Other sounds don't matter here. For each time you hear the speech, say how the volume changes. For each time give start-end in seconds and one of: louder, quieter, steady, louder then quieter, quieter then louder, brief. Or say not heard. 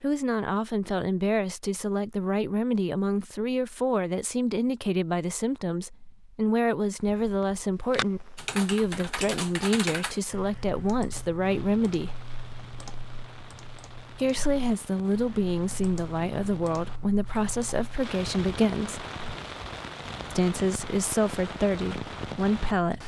0.0-12.2 steady
14.2-19.1 steady
20.3-23.0 brief.